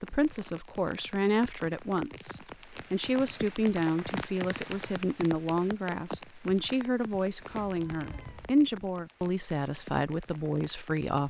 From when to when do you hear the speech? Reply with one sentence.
You can hear the speech from 0.0 to 11.2 s.